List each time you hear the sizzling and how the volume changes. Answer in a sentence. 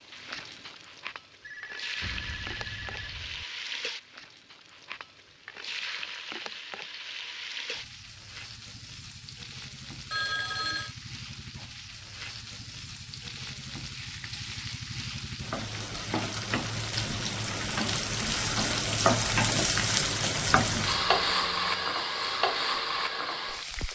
The sizzling can be heard from 0.0 to 23.8 s, getting louder.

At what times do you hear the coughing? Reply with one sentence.
You can't hear the coughing here.